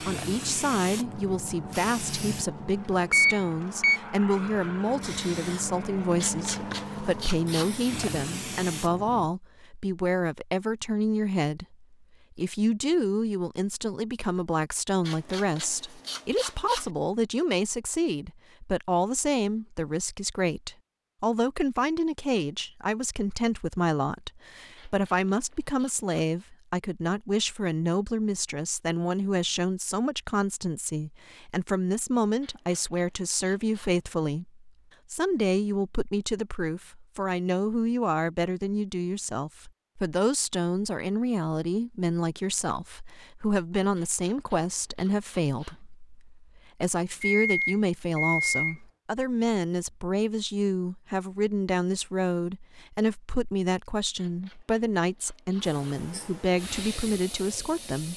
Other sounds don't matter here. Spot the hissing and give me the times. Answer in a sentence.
The hissing can be heard from 0.0 to 9.3 s and from 55.6 to 58.1 s.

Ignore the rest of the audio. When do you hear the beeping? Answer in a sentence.
You can hear the beeping from 3.1 to 4.0 s and from 47.2 to 48.8 s.